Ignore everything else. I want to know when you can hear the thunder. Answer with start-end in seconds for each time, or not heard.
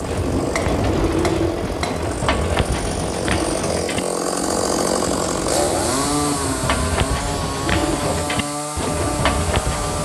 0.1-1.1.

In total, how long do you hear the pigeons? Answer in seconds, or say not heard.
10 s.